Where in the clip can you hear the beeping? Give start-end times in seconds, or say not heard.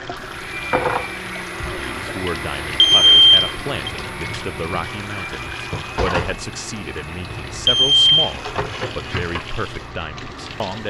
2.8-3.9, 7.7-8.3.